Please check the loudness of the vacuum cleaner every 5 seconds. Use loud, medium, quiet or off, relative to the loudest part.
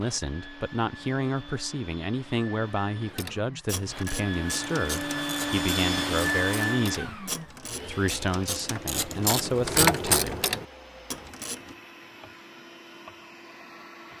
medium, loud, quiet.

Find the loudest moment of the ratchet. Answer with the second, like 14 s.
10 s.